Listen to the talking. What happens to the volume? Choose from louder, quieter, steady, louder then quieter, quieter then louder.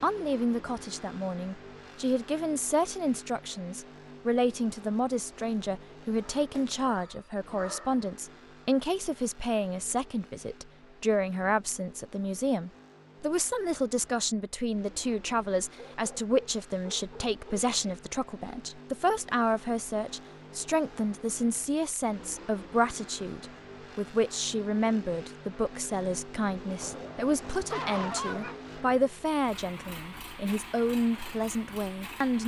steady.